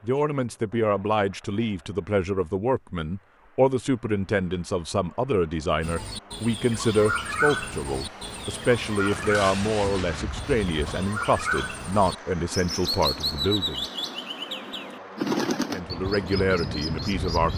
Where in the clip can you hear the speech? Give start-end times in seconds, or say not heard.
0.0-13.8, 15.7-17.5.